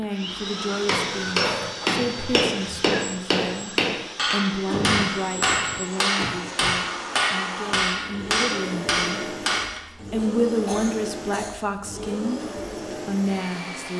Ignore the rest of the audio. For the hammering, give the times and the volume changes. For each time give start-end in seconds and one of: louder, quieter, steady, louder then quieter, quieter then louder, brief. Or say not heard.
0.7-9.8 steady.